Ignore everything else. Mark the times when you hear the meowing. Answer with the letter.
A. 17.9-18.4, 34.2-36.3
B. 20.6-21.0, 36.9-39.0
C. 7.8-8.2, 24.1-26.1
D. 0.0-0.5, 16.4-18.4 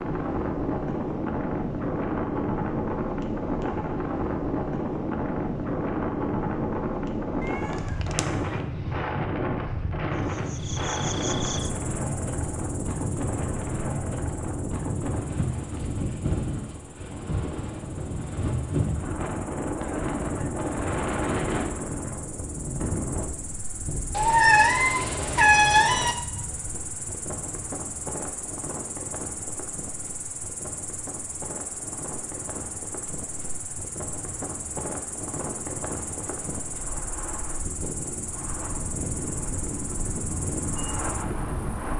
C.